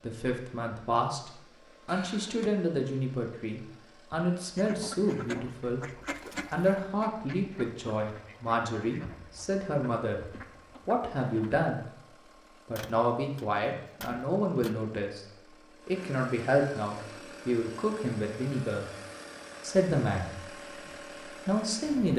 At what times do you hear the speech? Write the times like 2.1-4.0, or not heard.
0.0-5.8, 6.5-11.8, 12.7-15.2, 15.8-18.9, 19.6-20.6, 21.2-22.1.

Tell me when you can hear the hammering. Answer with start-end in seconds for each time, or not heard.
not heard.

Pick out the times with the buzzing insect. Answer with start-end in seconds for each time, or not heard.
not heard.